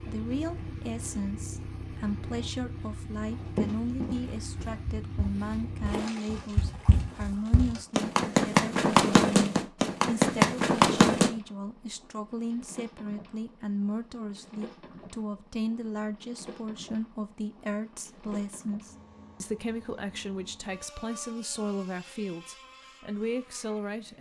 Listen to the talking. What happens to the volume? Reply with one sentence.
The loudness of the talking stays about the same.